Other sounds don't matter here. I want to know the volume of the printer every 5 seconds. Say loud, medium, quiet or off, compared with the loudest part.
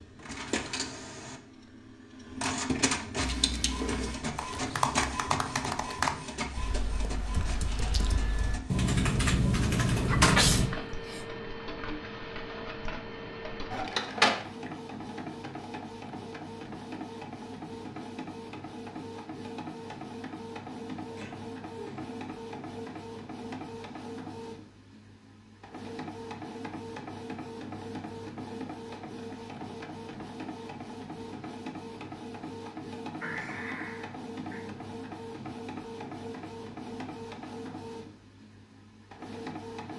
loud, medium, loud, medium, medium, medium, medium, medium.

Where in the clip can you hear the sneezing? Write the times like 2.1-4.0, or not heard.
10.1-11.2, 21.1-22.1, 33.2-34.6.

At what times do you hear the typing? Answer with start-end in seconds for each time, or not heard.
3.2-10.7.